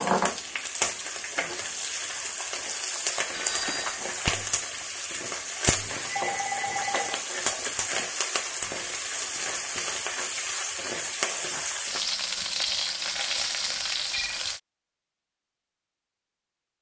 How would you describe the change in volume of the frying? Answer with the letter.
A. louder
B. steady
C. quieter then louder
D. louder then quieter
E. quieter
B.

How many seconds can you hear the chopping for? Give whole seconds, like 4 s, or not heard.
not heard.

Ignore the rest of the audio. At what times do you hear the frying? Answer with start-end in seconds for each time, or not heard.
0.0-14.6.